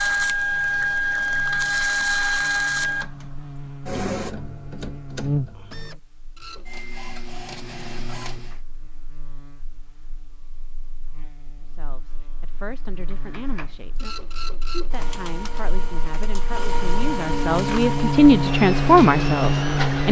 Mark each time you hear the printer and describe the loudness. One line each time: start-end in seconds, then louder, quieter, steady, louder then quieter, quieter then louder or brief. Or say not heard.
0.0-8.6 quieter
13.1-20.0 louder.